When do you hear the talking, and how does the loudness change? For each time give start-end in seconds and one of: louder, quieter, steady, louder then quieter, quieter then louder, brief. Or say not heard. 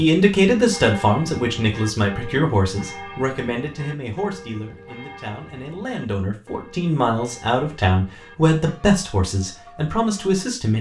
0.0-10.7 quieter then louder.